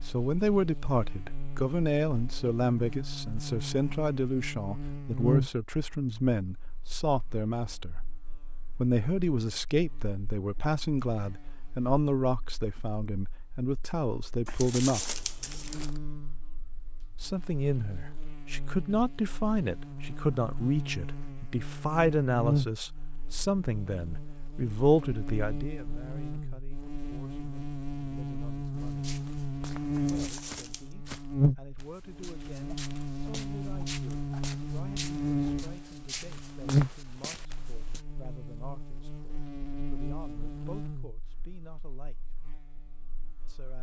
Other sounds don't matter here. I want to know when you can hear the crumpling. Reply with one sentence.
The crumpling can be heard from 14.4 to 16.0 s and from 29.9 to 30.9 s.